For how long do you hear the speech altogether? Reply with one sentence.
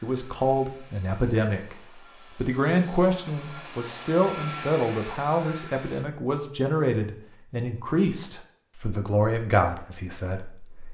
You can hear the speech for 10 seconds altogether.